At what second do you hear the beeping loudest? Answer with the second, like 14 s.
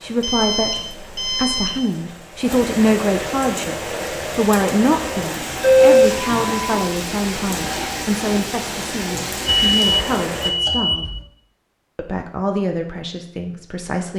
6 s.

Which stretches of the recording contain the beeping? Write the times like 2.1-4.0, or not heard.
0.2-1.8, 5.6-6.9, 9.4-11.2.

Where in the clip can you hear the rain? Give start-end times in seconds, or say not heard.
0.0-10.5.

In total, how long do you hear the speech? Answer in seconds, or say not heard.
13 s.